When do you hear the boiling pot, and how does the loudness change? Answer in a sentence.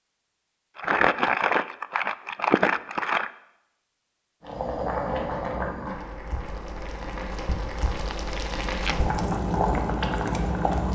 The boiling pot can be heard from 4.4 to 10.9 s, getting quieter then louder.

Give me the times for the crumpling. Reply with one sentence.
You can hear the crumpling from 0.8 to 3.3 s and from 8.1 to 8.9 s.